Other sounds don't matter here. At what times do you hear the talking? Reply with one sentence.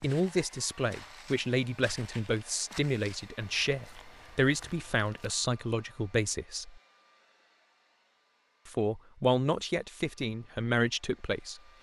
You can hear the talking from 0.0 to 6.8 s and from 8.7 to 11.6 s.